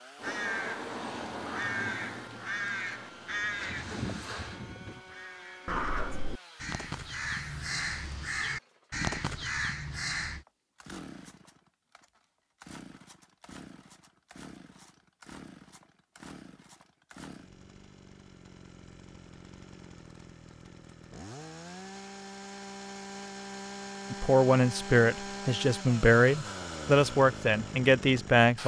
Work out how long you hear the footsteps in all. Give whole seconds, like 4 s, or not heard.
not heard.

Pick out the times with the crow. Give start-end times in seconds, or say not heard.
0.1-10.4.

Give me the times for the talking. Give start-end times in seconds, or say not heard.
24.1-28.6.